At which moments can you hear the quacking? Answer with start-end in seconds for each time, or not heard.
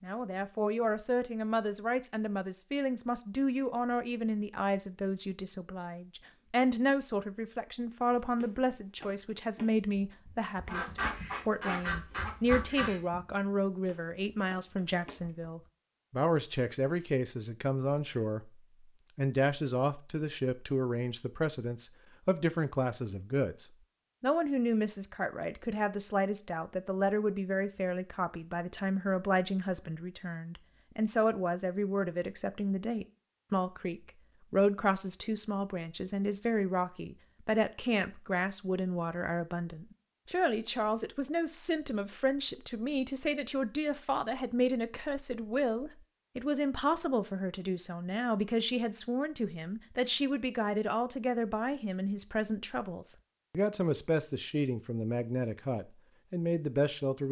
10.7-13.0.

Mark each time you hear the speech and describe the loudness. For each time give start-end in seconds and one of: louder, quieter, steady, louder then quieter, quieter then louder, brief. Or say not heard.
0.0-18.5 steady
19.1-57.2 steady.